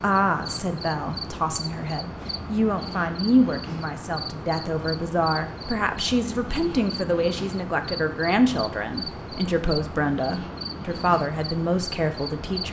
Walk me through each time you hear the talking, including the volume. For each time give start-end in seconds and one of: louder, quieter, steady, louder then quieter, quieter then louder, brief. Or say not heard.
0.0-12.6 steady.